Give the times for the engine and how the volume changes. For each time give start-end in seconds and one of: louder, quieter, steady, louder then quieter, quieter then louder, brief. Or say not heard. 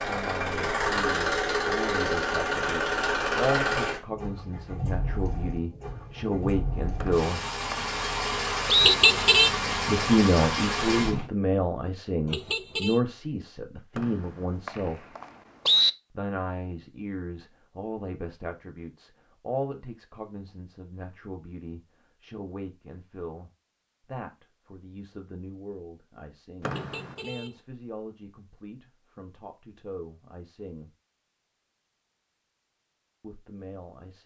0.0-11.3 quieter then louder.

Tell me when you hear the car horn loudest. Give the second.
9 s.